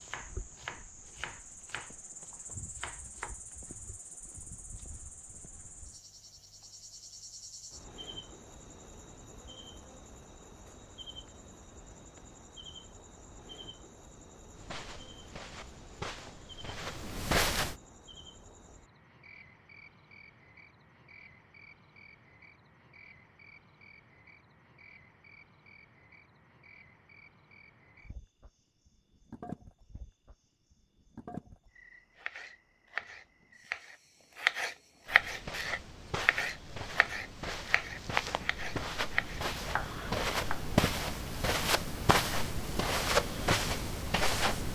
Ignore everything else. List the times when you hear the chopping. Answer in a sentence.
The chopping can be heard from 0.0 to 3.4 s and from 32.1 to 40.6 s.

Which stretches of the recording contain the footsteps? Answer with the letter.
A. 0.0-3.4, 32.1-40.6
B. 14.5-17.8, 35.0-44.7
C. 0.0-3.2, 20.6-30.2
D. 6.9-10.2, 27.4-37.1
B.